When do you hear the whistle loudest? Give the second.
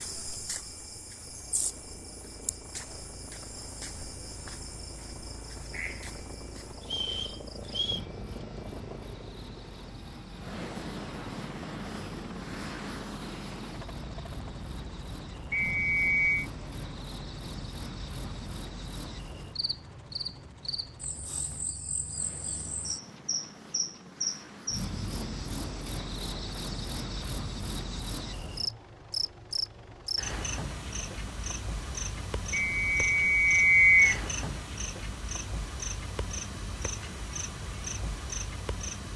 34 s.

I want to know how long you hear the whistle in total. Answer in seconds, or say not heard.
4 s.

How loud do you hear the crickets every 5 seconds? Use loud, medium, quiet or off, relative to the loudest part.
medium, medium, medium, medium, loud, loud, loud, loud.